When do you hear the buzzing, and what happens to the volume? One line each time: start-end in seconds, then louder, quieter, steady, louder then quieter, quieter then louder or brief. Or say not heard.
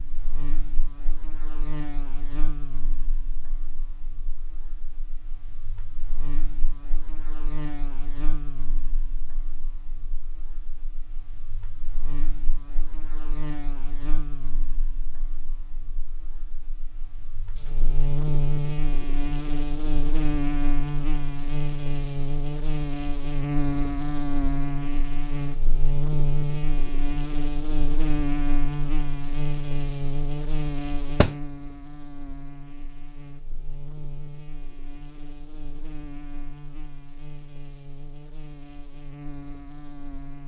0.0-40.4 louder then quieter.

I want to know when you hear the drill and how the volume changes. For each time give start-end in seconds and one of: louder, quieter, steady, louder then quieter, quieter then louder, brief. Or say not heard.
not heard.